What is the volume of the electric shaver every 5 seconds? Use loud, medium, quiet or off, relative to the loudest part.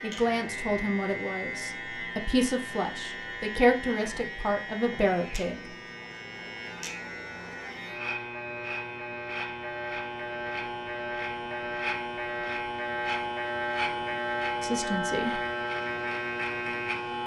medium, medium, loud, loud.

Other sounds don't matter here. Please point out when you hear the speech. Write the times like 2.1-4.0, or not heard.
0.0-5.8, 14.6-15.4.